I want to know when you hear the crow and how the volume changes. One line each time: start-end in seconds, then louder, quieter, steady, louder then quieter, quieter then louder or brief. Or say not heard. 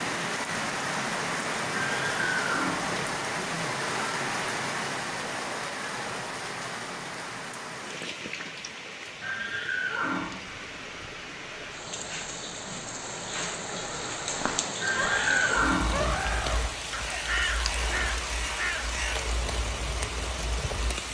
10.4-19.2 louder.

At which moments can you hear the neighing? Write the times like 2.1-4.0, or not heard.
1.8-3.3, 9.2-10.4, 14.8-16.1.